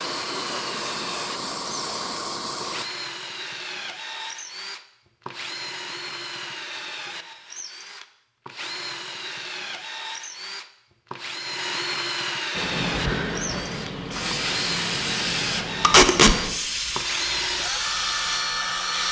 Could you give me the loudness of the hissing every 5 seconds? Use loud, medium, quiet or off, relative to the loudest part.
loud, off, loud, loud.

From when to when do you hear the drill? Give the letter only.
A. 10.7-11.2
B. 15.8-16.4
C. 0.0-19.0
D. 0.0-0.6
C.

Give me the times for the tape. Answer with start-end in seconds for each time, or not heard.
15.8-16.4.